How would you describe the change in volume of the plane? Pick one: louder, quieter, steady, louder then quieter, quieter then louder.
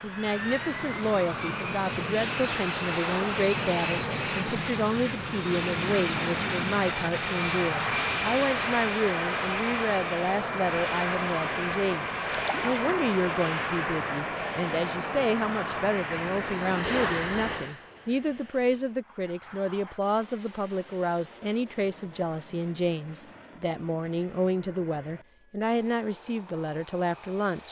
quieter.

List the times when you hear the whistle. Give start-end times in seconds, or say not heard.
not heard.